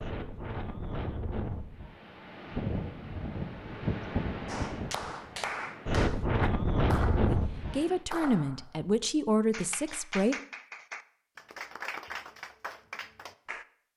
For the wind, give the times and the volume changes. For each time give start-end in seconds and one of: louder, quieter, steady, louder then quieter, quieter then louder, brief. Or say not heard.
0.0-8.0 louder.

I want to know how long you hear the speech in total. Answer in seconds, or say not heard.
3 s.